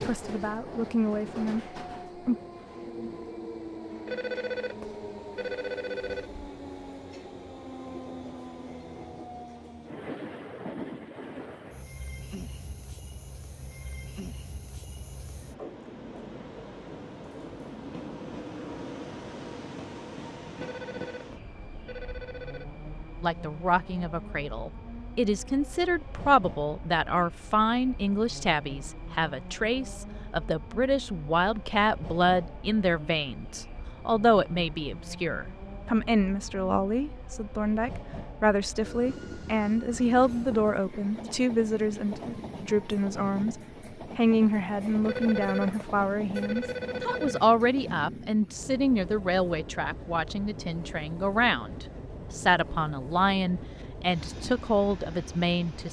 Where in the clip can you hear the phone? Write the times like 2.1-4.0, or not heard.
4.0-6.3, 20.6-22.6, 45.0-47.5.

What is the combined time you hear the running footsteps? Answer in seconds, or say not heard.
not heard.